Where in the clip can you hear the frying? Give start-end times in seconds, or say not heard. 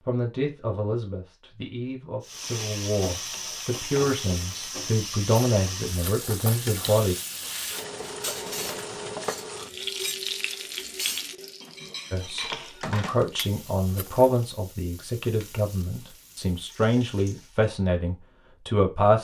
2.2-17.7.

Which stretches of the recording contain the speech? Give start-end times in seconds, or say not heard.
0.0-7.2, 12.1-19.1.